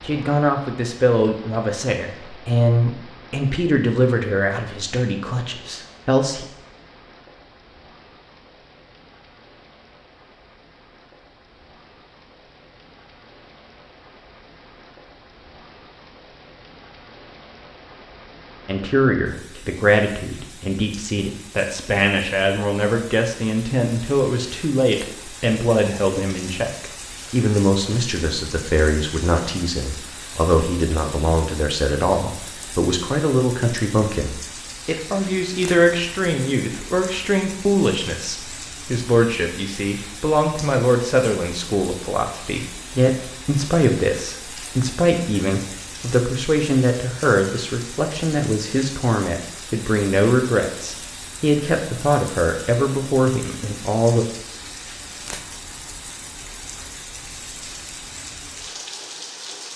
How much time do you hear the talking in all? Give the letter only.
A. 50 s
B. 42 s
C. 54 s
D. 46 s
B.